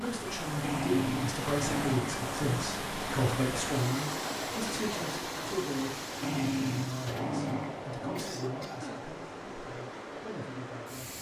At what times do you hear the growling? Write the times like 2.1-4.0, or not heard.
0.6-2.6, 6.2-8.2.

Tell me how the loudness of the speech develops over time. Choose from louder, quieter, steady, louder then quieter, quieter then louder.
quieter.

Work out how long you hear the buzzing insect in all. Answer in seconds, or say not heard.
not heard.